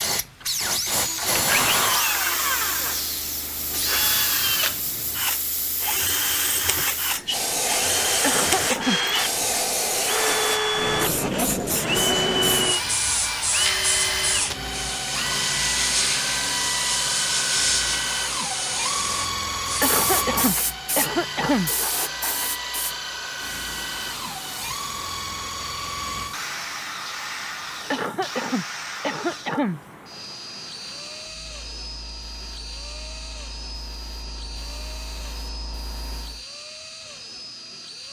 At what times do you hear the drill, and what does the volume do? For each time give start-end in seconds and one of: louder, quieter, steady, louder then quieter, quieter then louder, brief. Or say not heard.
0.0-38.0 quieter.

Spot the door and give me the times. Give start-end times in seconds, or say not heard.
not heard.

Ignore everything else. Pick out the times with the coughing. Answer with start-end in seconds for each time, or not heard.
8.2-9.0, 19.8-21.7, 27.9-29.8.